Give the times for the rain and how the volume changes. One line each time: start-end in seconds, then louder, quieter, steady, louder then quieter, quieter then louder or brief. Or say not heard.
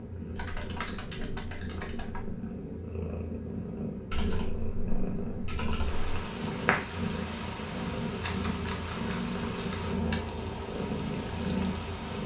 5.8-12.2 steady.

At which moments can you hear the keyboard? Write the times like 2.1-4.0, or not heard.
0.3-2.4, 4.1-6.2, 8.2-10.3.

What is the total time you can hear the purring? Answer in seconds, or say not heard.
12 s.